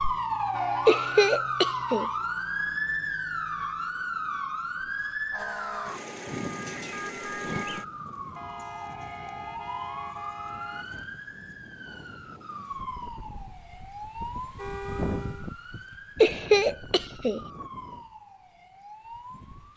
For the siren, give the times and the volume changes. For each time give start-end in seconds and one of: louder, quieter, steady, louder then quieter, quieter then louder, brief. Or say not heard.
0.0-19.7 quieter.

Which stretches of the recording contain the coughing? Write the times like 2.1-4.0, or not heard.
0.8-2.1, 16.2-17.4.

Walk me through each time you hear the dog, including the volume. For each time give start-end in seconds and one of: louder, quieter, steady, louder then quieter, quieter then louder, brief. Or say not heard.
not heard.